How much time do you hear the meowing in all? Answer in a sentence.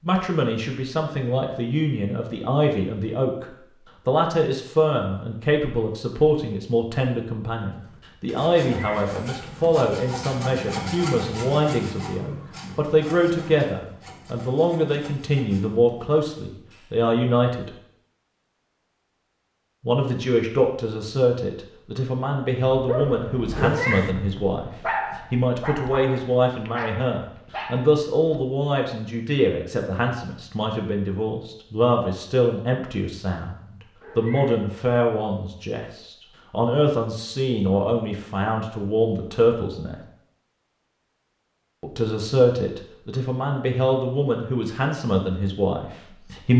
You can hear the meowing for 2 seconds altogether.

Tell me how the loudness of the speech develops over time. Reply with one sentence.
The volume of the speech stays about the same.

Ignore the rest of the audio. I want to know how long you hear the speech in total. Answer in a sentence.
You can hear the speech for 42 seconds altogether.